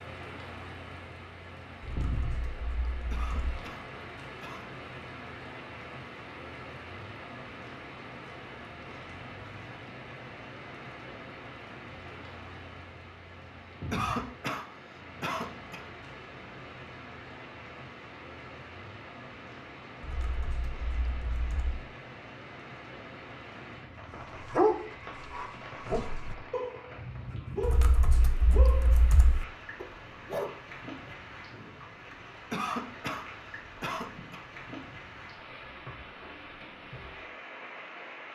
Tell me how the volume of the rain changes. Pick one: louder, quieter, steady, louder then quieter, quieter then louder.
steady.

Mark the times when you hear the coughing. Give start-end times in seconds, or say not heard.
3.1-4.7, 13.9-15.8, 32.5-34.4.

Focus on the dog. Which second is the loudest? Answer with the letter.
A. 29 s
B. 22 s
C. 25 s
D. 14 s
C.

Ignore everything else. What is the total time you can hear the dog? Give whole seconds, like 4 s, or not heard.
7 s.